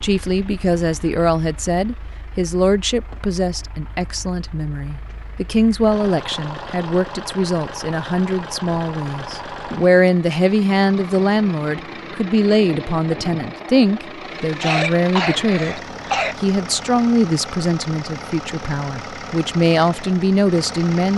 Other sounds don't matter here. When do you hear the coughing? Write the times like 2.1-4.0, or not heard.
14.6-16.4.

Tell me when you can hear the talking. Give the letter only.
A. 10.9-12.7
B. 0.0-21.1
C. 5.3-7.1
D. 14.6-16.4
B.